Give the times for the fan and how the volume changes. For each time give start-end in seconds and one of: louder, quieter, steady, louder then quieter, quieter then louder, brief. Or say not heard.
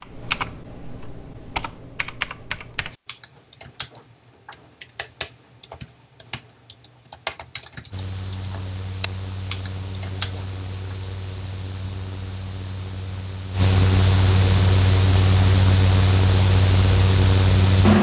7.9-17.9 louder.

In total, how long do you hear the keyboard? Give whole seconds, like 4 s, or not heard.
11 s.